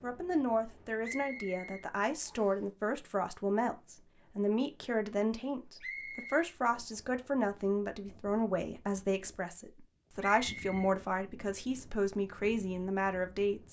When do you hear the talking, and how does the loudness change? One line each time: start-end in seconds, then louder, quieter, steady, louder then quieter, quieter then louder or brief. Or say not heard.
0.0-13.6 steady.